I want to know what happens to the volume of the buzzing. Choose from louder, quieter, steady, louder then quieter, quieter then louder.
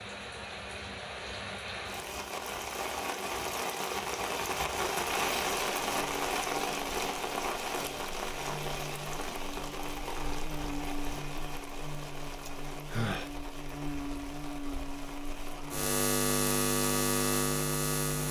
louder.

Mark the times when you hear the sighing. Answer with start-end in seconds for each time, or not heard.
12.4-13.3.